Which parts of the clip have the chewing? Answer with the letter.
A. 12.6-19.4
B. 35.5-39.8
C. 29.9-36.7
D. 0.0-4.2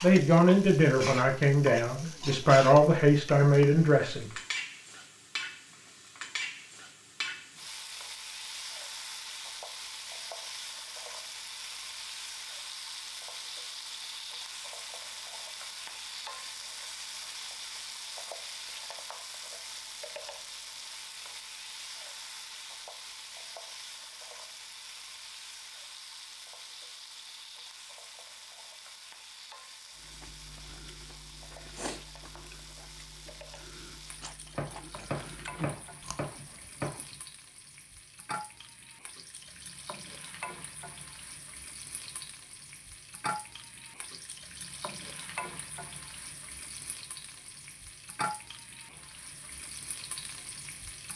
C.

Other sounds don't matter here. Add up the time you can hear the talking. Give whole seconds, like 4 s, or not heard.
4 s.